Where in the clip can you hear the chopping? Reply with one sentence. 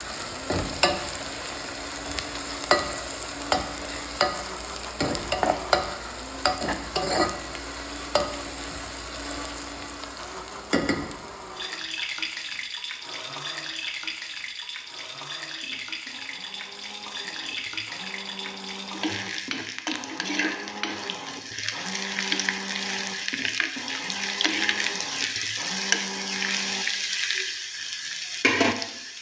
The chopping can't be heard in this clip.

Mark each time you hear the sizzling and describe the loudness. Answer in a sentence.
The sizzling can be heard from 0.0 to 29.1 s, getting quieter then louder.